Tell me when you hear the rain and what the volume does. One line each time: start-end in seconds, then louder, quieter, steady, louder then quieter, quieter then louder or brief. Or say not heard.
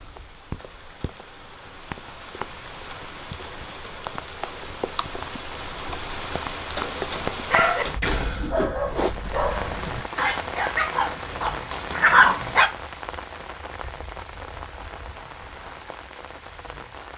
0.0-17.1 louder then quieter.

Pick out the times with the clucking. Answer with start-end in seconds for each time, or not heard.
not heard.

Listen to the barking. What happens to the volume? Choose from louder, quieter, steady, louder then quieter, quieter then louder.
louder.